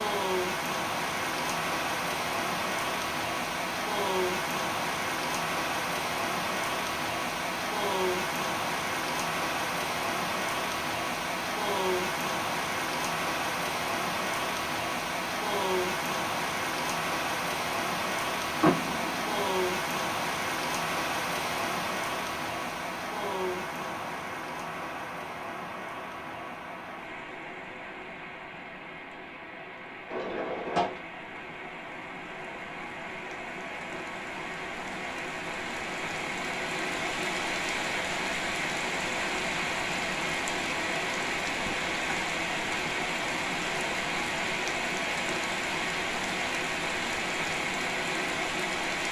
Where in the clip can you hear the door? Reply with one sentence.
You can hear the door from 18.6 to 19.3 s and from 30.1 to 31.0 s.